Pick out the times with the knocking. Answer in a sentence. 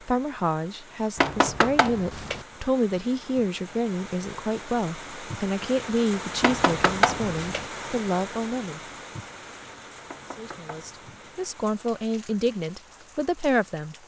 The knocking can be heard from 1.1 to 2.5 s, from 6.4 to 7.7 s and from 10.1 to 11.3 s.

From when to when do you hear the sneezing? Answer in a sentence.
The sneezing can't be heard in this clip.